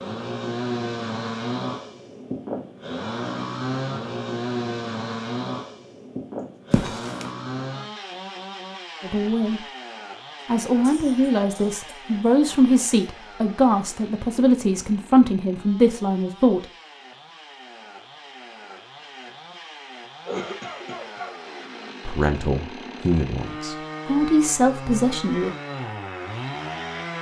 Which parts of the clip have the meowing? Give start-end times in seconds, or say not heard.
6.7-7.3.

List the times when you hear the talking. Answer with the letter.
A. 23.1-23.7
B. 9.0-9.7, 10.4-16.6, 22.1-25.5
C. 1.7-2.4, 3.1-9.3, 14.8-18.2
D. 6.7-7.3
B.